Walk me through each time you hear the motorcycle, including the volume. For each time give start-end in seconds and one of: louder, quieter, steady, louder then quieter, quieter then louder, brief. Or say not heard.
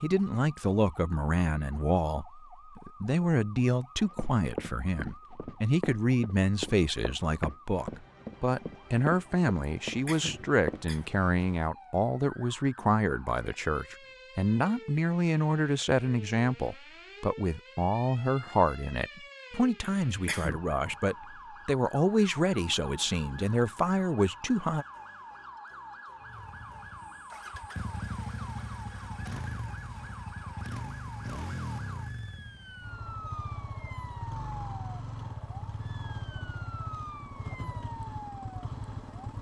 26.2-39.3 steady.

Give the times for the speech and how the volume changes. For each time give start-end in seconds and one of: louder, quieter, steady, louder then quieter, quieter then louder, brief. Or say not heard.
0.0-24.9 steady.